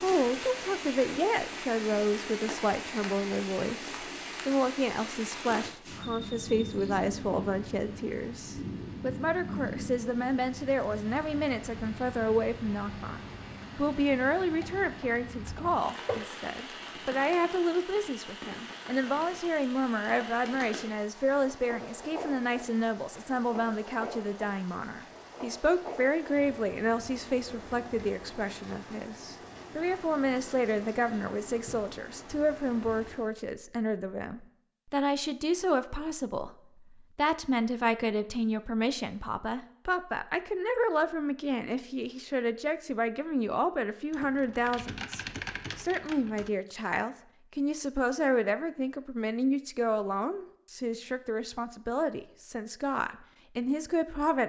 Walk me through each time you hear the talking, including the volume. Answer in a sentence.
The talking can be heard from 0.0 to 54.4 s, at a steady volume.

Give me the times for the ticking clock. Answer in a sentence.
You can't hear the ticking clock here.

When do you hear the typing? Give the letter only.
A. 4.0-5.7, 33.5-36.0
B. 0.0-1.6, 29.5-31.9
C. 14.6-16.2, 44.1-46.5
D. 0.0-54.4
C.